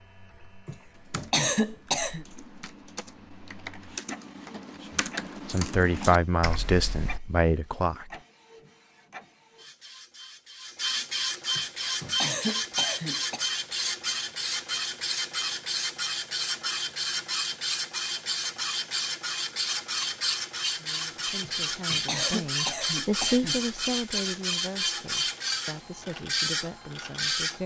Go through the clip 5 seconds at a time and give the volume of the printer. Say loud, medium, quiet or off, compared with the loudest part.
quiet, quiet, loud, loud, loud, loud.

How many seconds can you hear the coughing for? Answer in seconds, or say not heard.
6 s.